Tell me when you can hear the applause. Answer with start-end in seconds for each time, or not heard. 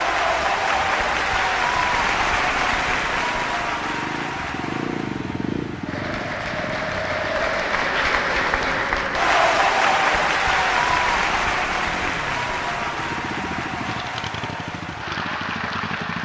0.0-16.2.